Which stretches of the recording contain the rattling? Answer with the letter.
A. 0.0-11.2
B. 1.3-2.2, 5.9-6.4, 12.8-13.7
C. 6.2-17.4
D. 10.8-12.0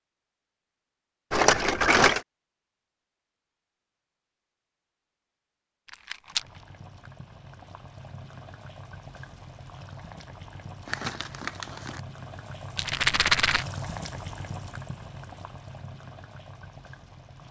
B.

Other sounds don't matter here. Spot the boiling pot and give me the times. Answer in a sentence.
You can hear the boiling pot from 6.2 to 17.4 s.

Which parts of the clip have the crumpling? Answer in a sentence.
You can hear the crumpling from 10.8 to 12.0 s.